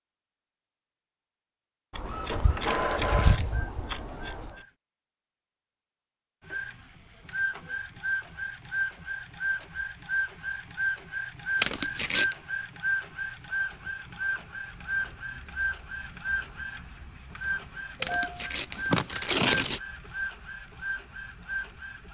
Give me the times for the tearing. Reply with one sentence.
You can hear the tearing from 2.7 to 3.5 s, from 11.6 to 12.3 s and from 18.0 to 19.8 s.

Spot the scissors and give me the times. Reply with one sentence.
You can hear the scissors from 1.9 to 4.6 s and from 18.8 to 19.6 s.